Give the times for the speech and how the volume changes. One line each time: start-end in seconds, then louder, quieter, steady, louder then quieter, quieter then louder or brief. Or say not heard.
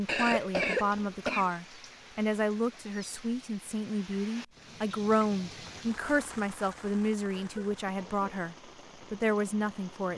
0.0-10.1 steady.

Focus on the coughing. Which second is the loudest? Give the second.
1 s.